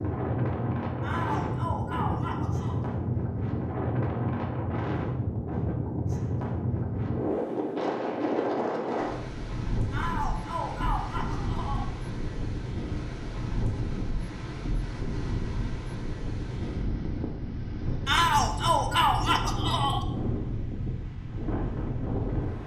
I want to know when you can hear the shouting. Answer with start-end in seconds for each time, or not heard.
1.0-2.8, 9.9-11.9, 18.1-20.1.